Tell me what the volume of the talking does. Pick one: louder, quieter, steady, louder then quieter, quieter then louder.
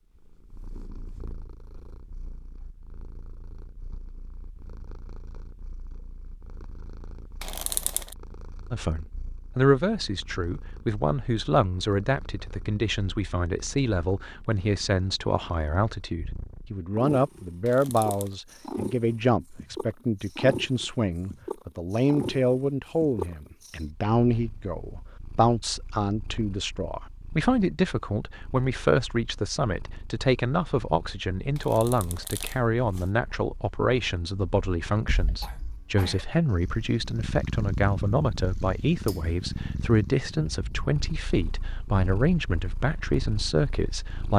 steady.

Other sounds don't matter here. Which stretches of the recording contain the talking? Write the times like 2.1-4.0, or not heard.
8.7-44.3.